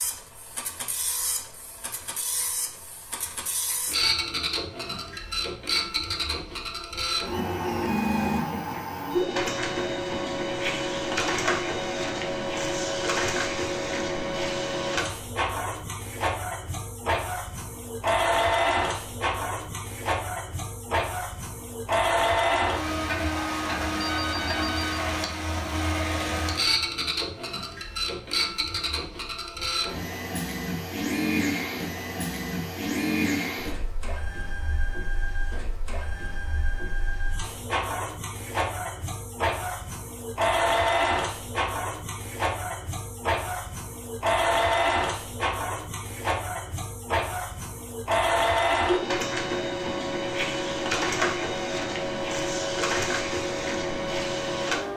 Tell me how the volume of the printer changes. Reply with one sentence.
The volume of the printer stays about the same.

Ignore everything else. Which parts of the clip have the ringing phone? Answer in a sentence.
You can hear the ringing phone from 23.9 to 25.1 s.